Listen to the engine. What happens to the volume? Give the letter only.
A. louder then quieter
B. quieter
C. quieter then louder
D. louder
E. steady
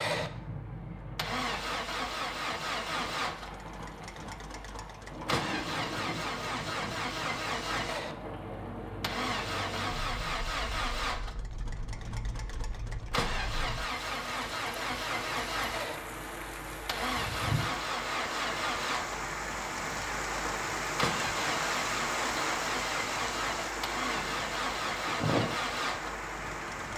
E.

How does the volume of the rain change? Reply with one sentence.
The loudness of the rain goes up.